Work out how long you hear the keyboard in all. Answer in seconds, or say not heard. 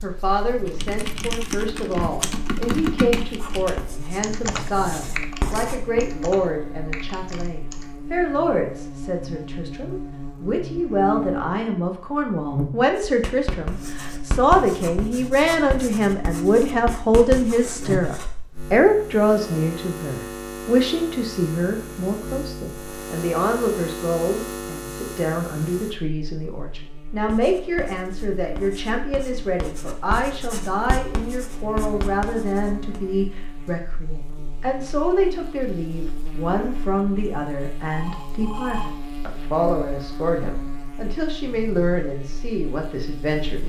7 s.